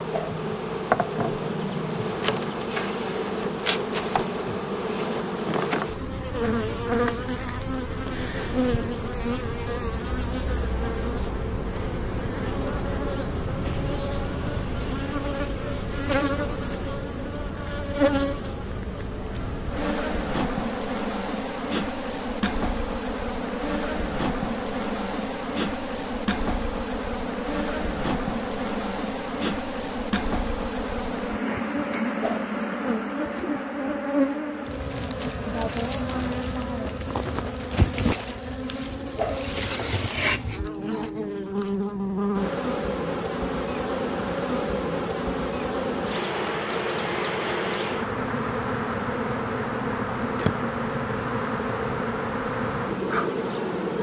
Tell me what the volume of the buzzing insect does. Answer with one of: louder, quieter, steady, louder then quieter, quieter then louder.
steady.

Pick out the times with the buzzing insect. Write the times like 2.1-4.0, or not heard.
0.0-53.9.